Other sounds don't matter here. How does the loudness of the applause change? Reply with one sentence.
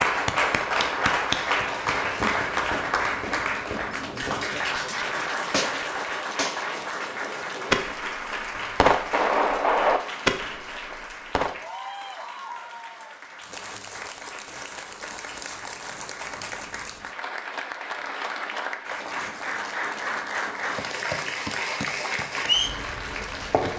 The loudness of the applause goes down, then up.